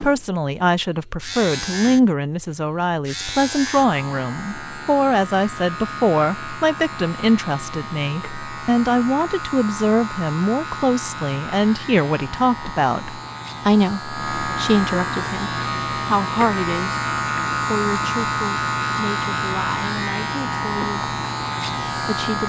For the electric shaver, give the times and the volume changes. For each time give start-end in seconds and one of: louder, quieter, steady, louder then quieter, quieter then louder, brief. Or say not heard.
0.0-22.4 louder.